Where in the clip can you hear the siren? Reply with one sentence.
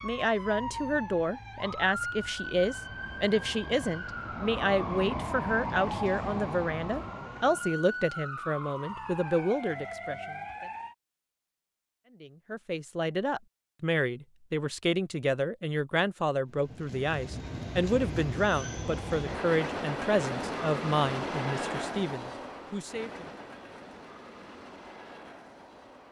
You can hear the siren from 0.0 to 10.9 s.